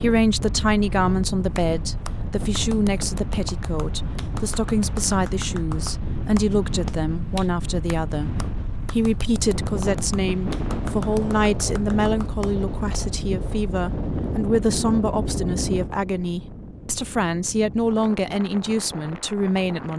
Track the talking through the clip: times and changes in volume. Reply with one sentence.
You can hear the talking from 0.0 to 19.9 s, at a steady volume.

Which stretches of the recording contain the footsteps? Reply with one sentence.
You can't hear the footsteps here.